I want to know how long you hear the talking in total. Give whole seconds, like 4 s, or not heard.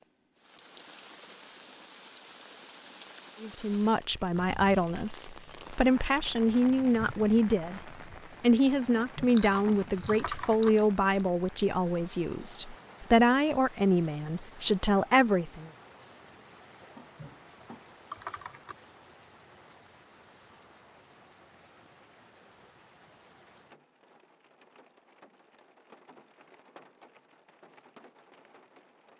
12 s.